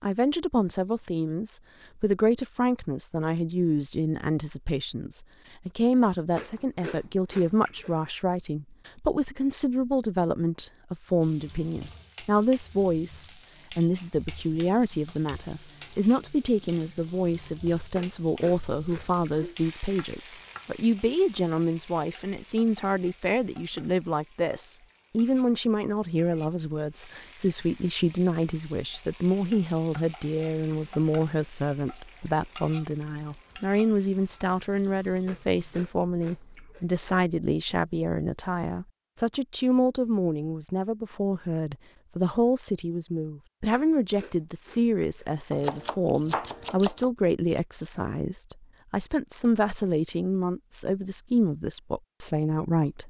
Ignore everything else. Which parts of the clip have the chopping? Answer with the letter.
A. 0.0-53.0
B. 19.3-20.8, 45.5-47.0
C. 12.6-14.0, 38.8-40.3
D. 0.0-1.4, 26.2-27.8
B.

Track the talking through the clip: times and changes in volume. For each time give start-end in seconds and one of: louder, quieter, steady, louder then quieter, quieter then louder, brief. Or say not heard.
0.0-53.0 steady.